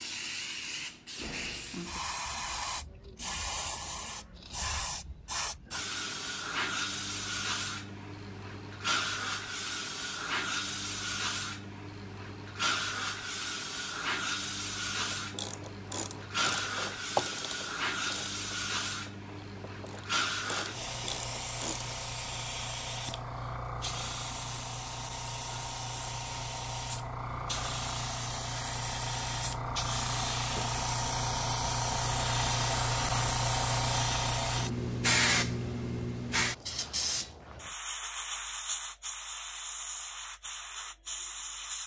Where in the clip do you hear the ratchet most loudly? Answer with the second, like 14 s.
17 s.